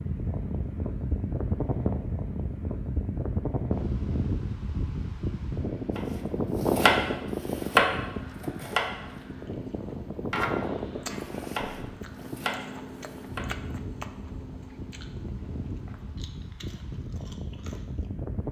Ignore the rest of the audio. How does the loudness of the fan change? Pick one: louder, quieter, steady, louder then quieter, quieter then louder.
quieter.